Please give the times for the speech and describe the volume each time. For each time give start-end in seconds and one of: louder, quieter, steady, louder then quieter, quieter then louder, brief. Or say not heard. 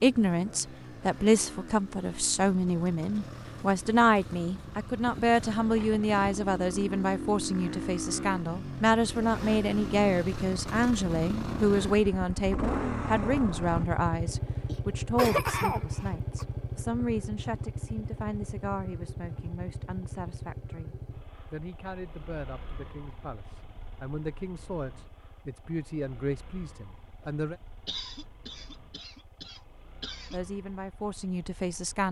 0.0-27.6 quieter
30.3-32.0 brief.